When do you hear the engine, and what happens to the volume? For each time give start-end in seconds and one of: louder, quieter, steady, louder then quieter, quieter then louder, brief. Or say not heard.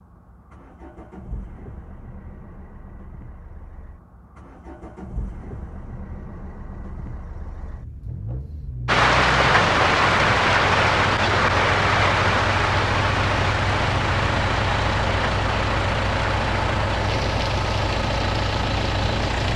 0.0-19.5 louder.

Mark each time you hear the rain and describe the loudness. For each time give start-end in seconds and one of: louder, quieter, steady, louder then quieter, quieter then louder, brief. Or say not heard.
8.8-19.5 quieter.